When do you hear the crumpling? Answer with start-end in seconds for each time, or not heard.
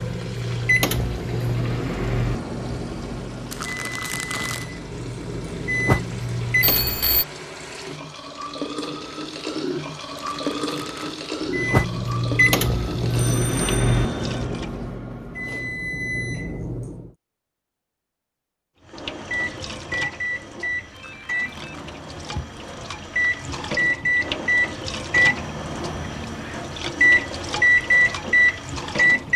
3.5-4.7, 10.2-11.2, 20.9-21.8.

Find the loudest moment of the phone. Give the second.
7 s.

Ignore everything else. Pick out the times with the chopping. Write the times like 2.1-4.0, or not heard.
not heard.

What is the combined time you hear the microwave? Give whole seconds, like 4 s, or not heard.
23 s.